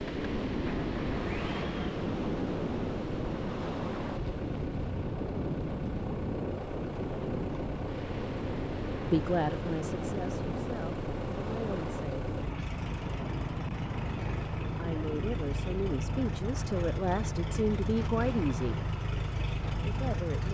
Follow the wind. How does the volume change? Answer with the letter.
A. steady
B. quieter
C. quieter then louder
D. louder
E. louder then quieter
B.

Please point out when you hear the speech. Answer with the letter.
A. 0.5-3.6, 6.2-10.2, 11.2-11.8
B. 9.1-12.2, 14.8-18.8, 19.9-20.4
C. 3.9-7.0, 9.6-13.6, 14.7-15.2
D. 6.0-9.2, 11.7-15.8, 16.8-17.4
B.